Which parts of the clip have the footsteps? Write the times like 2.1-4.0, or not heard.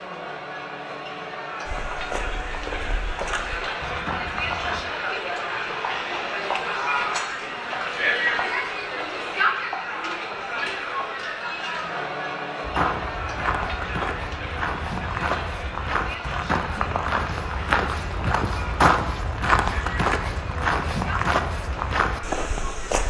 1.6-4.8, 12.6-23.0.